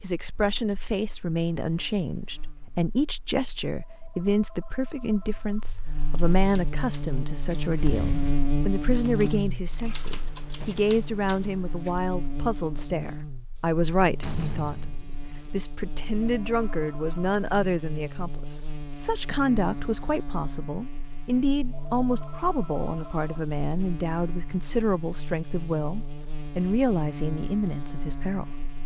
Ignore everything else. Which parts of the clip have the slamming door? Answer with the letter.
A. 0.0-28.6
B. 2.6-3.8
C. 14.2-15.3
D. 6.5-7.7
C.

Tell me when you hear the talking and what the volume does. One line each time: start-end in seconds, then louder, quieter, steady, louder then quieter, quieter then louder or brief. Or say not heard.
0.0-28.6 steady.